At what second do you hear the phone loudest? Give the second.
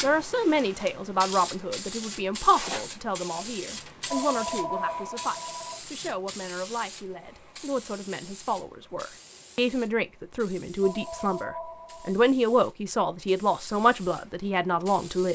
5 s.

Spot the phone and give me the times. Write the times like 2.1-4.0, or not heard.
4.0-5.8, 10.8-12.2.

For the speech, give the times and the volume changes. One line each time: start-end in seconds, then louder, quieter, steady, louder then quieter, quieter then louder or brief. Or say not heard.
0.0-15.3 quieter then louder.